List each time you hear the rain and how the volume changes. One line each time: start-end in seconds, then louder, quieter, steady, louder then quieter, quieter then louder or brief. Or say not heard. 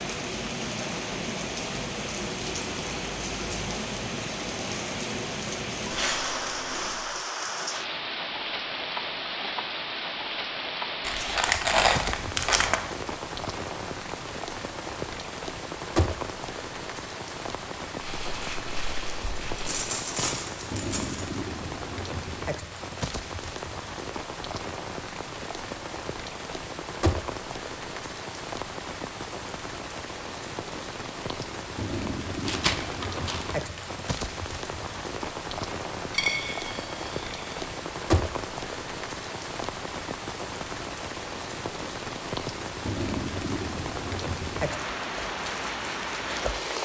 0.0-46.8 steady.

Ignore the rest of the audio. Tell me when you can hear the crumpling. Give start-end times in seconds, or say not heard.
11.1-12.8, 18.0-19.8, 32.5-33.9.